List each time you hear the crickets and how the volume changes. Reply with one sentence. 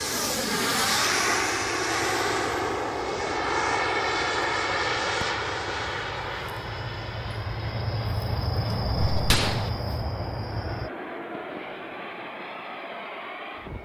The crickets can be heard from 0.0 to 10.9 s, getting louder.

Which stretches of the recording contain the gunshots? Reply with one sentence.
The gunshots can be heard from 8.9 to 9.7 s.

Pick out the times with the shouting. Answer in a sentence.
The shouting can't be heard in this clip.